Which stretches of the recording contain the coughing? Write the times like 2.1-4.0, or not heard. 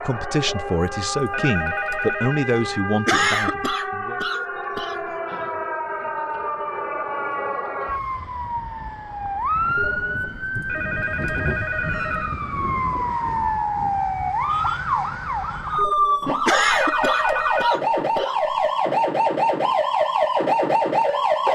3.0-5.0, 16.4-18.5.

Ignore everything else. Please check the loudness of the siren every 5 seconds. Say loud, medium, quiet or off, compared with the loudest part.
medium, medium, medium, loud, loud.